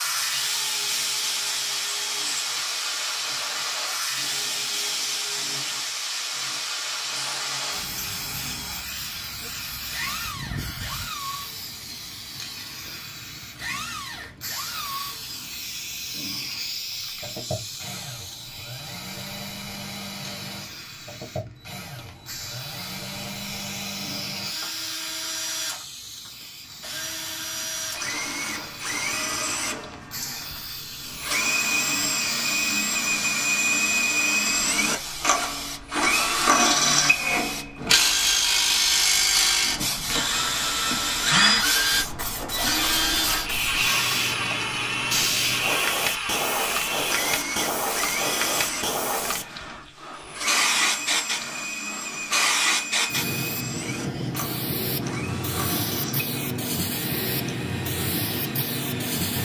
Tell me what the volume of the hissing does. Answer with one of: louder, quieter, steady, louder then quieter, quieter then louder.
quieter then louder.